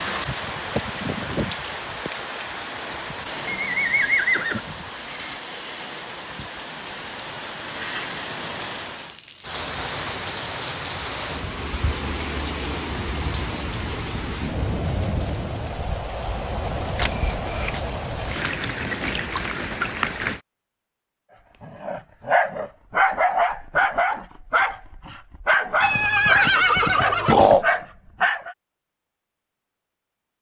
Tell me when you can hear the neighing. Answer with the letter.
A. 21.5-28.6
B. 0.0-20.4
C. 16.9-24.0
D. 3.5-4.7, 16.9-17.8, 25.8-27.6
D.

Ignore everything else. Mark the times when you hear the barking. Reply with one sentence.
The barking can be heard from 21.5 to 28.6 s.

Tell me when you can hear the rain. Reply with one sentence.
The rain can be heard from 0.0 to 20.4 s.